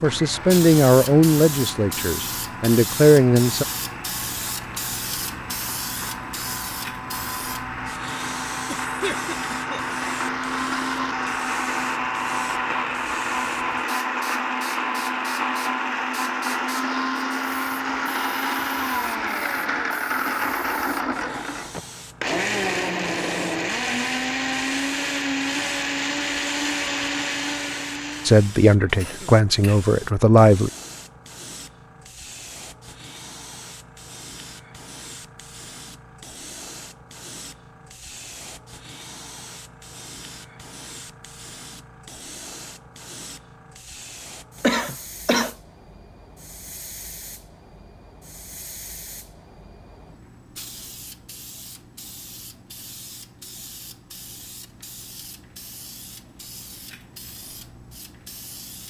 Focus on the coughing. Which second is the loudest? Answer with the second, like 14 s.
45 s.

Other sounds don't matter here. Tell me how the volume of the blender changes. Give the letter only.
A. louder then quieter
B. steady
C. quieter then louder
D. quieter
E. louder
E.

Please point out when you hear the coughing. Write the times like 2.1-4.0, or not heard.
8.7-9.8, 28.9-29.9, 44.6-45.5.